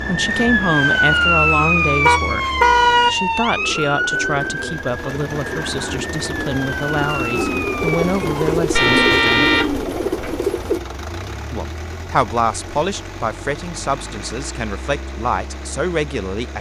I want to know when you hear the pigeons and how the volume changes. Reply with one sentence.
You can hear the pigeons from 3.5 to 10.8 s, getting louder.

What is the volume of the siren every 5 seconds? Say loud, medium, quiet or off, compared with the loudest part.
loud, medium, off, off.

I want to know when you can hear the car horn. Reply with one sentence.
The car horn can be heard from 2.0 to 3.1 s and from 8.7 to 10.3 s.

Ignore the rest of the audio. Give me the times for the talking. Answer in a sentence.
You can hear the talking from 0.1 to 9.6 s and from 11.5 to 16.5 s.